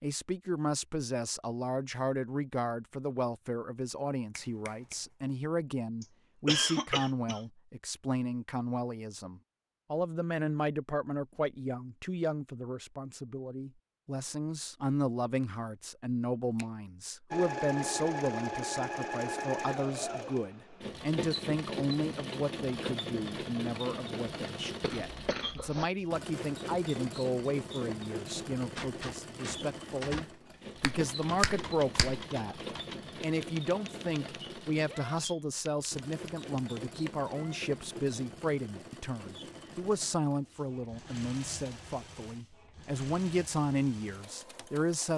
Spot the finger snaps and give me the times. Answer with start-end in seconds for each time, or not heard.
4.3-5.0, 30.8-32.2.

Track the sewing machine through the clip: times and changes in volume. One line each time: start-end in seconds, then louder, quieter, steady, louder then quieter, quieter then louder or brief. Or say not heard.
17.3-45.1 quieter.